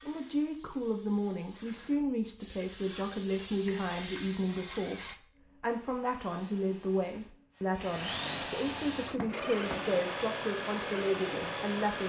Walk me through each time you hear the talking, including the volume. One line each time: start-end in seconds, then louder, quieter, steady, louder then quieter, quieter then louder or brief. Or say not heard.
0.1-12.0 steady.